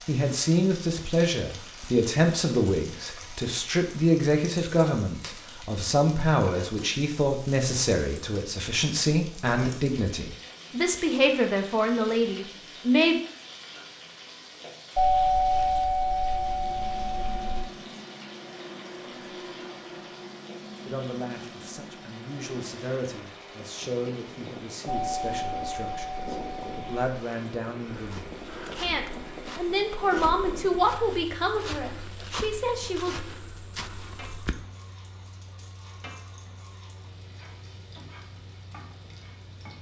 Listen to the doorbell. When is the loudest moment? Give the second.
15 s.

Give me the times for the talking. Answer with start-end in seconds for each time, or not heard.
0.1-13.2, 20.9-33.1.